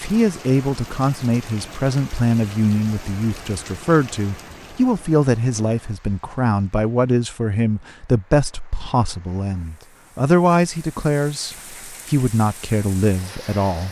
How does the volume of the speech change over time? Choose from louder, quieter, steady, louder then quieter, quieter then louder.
steady.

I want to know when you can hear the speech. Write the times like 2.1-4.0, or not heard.
0.0-13.8.